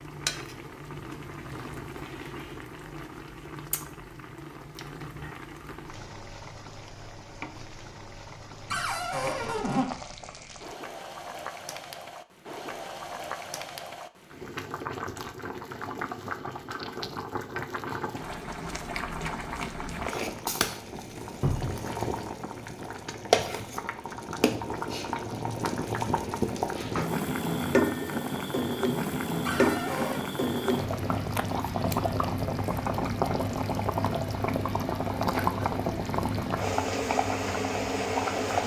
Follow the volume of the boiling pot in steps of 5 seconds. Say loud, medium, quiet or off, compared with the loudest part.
medium, quiet, medium, medium, loud, loud, loud, loud.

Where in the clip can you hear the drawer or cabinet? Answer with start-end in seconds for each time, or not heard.
8.7-9.9, 21.4-21.8, 29.4-30.2.